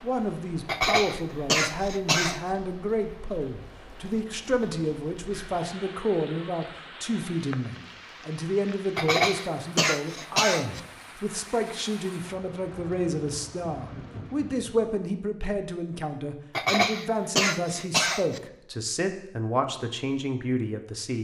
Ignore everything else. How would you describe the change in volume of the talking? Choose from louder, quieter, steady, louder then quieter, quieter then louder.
steady.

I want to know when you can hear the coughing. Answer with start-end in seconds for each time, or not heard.
0.7-2.4, 8.9-10.8, 16.6-18.4.